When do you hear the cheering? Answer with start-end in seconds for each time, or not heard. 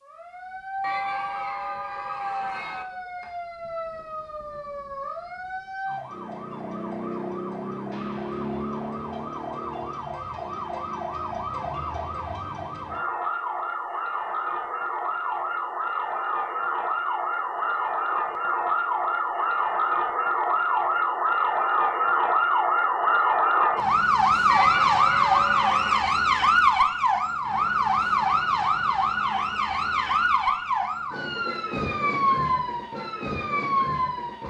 0.8-2.9, 24.4-26.1.